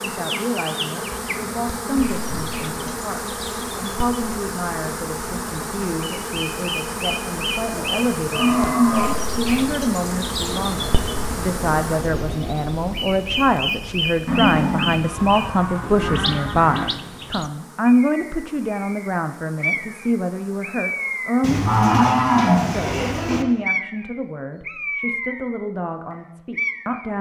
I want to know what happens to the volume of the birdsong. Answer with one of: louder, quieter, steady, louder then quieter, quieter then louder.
louder.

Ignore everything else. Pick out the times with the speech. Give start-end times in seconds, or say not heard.
0.0-27.1.